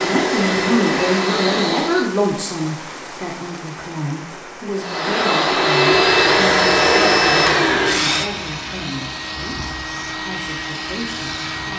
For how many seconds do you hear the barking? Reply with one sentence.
You can't hear the barking here.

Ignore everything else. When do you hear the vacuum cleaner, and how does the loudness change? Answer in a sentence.
You can hear the vacuum cleaner briefly from 0.0 to 2.1 s; and from 4.8 to 11.7 s, getting quieter.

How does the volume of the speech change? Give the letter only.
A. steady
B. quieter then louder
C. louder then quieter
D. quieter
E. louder
D.